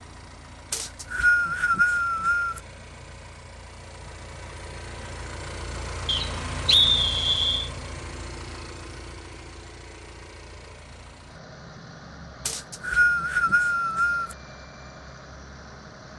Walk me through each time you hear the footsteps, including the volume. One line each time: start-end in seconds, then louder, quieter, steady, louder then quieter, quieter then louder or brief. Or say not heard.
not heard.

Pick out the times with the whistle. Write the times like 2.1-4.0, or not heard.
0.7-2.6, 6.0-7.7, 12.4-14.3.